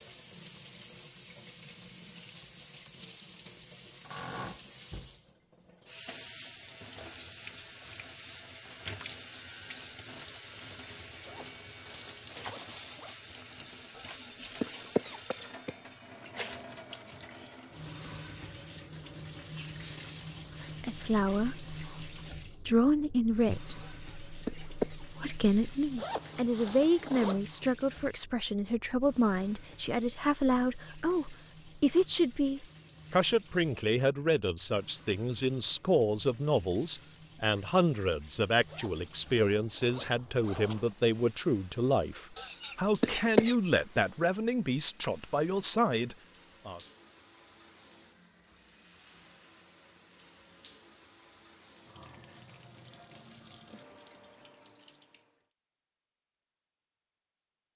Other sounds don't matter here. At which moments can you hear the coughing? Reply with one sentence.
You can hear the coughing from 13.9 to 15.8 s, from 23.8 to 25.0 s and from 42.4 to 43.5 s.